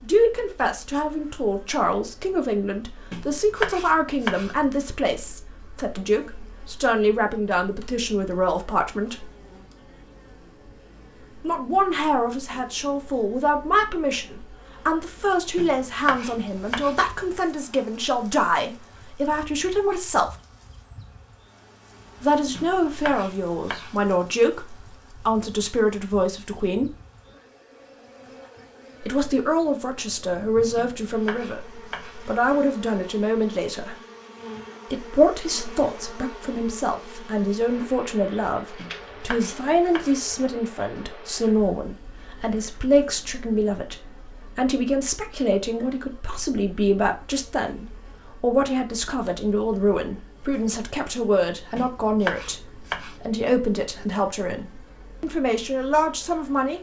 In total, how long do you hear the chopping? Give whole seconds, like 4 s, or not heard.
10 s.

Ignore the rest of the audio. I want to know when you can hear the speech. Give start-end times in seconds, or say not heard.
0.0-9.2, 11.4-20.3, 22.2-26.9, 29.0-34.0, 34.9-56.7.